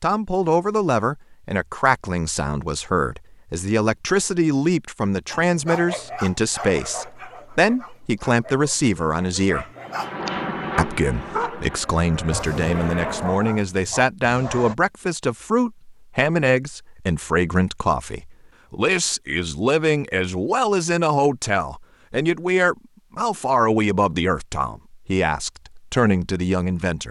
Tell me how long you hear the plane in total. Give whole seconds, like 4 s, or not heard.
4 s.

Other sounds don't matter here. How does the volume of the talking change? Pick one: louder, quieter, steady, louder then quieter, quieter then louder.
steady.